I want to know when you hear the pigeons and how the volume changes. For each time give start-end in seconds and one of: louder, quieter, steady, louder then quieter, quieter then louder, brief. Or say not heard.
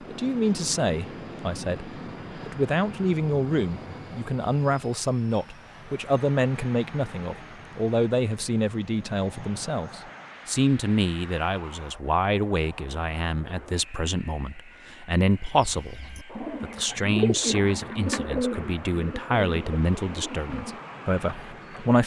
15.6-21.8 louder then quieter.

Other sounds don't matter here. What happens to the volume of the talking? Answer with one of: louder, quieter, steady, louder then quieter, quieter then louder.
steady.